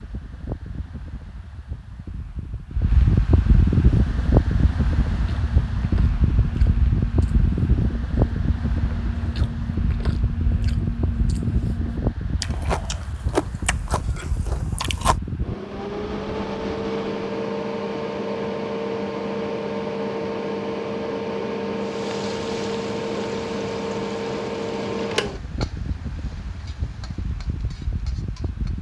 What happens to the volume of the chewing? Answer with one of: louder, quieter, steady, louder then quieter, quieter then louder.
louder.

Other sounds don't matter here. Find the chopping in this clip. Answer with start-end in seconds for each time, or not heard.
not heard.